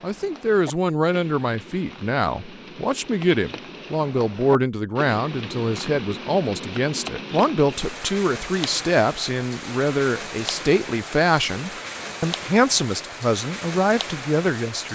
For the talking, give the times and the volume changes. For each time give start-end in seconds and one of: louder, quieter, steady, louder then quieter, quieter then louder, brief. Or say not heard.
0.0-14.9 steady.